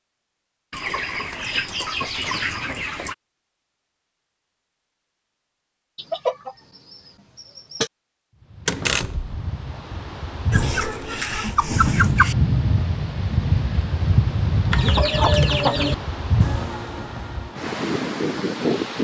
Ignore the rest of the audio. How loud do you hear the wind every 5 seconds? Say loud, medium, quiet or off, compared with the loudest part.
off, quiet, loud, loud.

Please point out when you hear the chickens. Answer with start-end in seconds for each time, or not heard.
0.7-3.1, 6.0-7.9, 10.5-12.3, 14.7-15.9.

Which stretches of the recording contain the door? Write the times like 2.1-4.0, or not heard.
8.7-9.3.